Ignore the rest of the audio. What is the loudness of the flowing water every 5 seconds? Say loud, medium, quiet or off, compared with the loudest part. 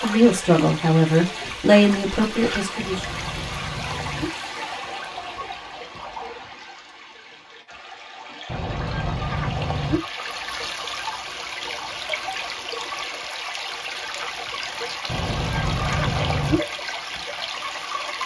loud, medium, loud, loud.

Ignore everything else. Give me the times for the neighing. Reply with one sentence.
The neighing can be heard from 2.8 to 4.3 s, from 8.4 to 10.0 s and from 15.1 to 16.6 s.